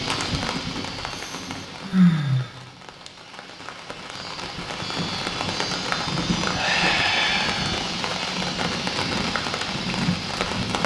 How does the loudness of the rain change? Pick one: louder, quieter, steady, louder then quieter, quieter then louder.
quieter then louder.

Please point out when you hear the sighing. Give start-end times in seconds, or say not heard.
1.1-2.6, 6.5-7.8.